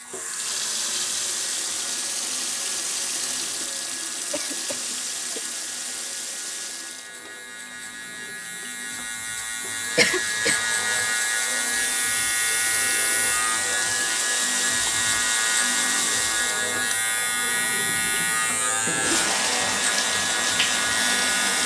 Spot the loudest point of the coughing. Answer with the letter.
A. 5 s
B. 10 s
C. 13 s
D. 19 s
B.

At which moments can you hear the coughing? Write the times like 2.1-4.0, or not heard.
4.3-5.5, 9.9-10.7, 18.0-19.4.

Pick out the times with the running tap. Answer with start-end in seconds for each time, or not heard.
0.1-21.6.